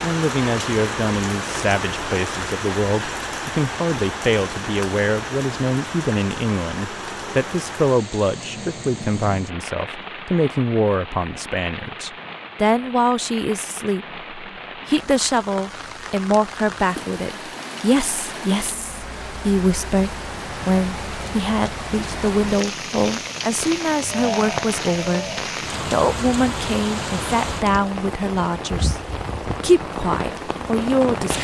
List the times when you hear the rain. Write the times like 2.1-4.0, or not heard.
0.0-31.3.